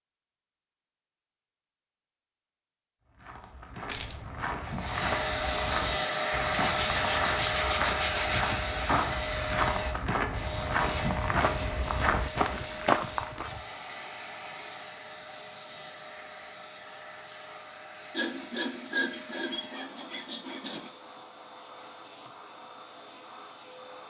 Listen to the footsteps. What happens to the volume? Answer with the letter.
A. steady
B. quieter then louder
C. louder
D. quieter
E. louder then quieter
C.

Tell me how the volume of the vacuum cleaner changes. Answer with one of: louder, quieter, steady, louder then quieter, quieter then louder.
quieter.